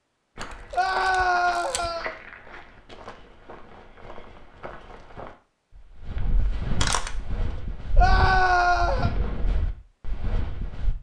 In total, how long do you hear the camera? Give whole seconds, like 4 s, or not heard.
2 s.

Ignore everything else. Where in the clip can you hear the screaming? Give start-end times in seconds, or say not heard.
0.7-2.1, 8.0-9.1.